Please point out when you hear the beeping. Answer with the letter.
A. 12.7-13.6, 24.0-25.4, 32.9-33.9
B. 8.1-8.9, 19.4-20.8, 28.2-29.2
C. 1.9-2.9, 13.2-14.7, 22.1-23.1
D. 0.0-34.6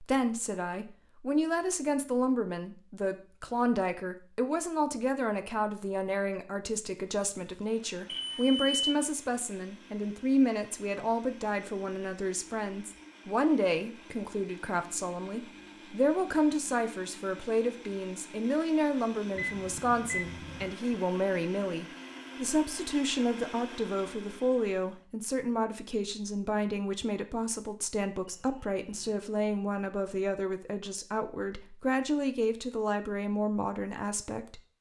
B.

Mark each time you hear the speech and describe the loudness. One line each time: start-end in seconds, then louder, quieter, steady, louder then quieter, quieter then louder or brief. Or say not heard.
0.0-34.6 steady.